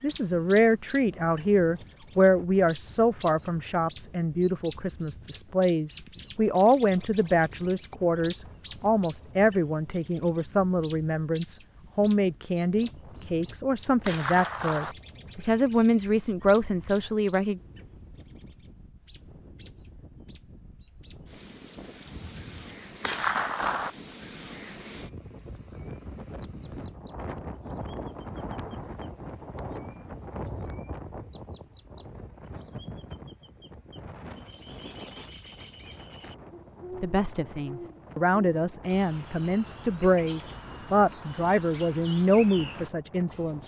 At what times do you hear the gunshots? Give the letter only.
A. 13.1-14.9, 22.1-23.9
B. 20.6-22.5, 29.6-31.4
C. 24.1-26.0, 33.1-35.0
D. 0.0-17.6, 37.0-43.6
A.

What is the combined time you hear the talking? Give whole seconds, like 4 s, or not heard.
24 s.